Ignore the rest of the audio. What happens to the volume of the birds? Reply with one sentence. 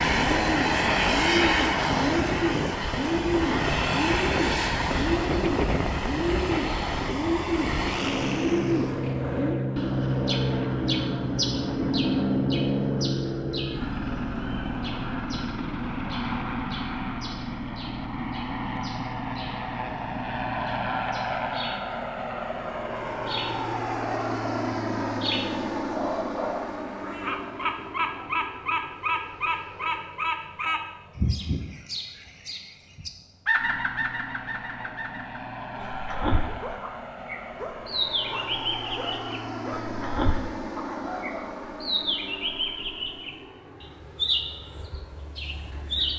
The loudness of the birds goes down, then up.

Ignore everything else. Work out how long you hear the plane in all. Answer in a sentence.
The plane can be heard for 46 seconds in total.